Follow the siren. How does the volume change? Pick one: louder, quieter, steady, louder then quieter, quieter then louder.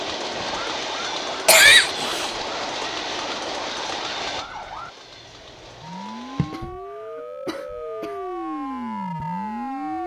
louder.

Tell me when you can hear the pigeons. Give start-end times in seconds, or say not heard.
not heard.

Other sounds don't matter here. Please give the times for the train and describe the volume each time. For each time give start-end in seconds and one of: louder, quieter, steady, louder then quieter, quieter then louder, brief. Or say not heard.
0.0-6.7 quieter.